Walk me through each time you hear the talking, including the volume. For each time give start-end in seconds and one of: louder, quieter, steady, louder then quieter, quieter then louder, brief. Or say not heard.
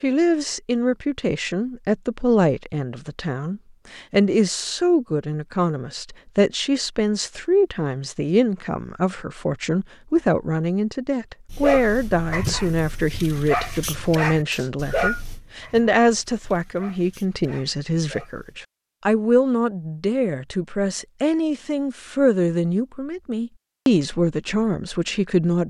0.0-25.6 steady.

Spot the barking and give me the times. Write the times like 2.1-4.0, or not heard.
11.4-18.6.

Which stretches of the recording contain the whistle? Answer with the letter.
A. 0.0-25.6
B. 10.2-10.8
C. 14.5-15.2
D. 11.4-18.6
C.